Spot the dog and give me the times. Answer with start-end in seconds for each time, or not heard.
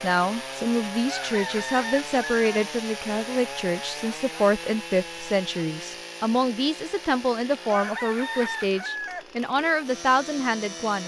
not heard.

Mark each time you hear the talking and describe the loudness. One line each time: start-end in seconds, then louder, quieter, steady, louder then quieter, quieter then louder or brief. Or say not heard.
0.0-11.0 steady.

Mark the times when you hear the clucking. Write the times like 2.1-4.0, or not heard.
1.1-2.6, 7.7-9.2.